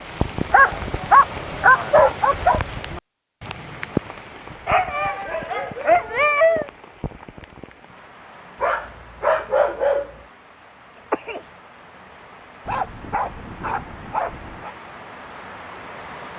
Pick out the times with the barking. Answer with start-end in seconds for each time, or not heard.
0.5-2.6, 4.7-6.7, 8.6-10.1, 12.7-14.8.